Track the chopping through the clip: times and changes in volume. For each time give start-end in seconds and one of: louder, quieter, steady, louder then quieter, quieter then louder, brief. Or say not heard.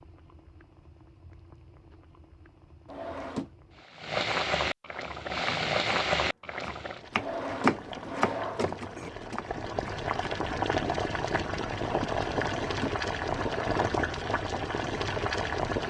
5.2-10.4 louder then quieter.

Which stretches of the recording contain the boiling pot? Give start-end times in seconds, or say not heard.
0.0-15.8.